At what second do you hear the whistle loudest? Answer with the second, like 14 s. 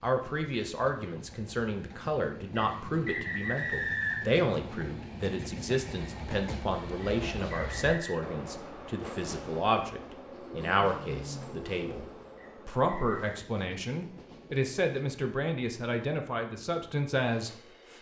4 s.